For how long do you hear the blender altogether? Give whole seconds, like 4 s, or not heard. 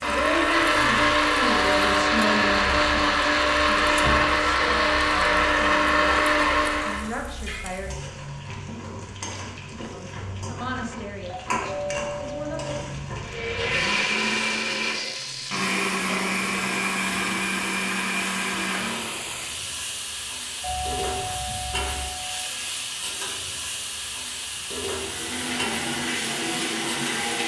16 s.